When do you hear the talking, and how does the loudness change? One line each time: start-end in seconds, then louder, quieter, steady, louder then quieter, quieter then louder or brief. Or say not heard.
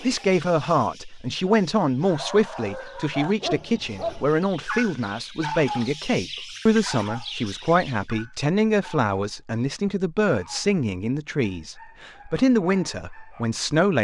0.0-13.9 steady.